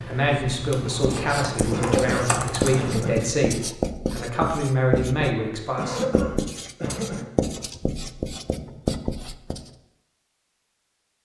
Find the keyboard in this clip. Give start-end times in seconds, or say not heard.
0.0-3.4.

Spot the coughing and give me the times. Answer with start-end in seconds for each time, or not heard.
1.7-3.2, 5.8-7.3.